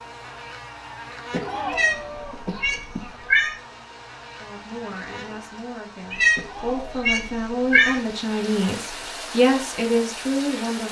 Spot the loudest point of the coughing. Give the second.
2 s.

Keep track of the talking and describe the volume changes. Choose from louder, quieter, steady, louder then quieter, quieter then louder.
louder.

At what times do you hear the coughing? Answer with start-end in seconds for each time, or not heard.
1.3-3.2, 6.3-7.0.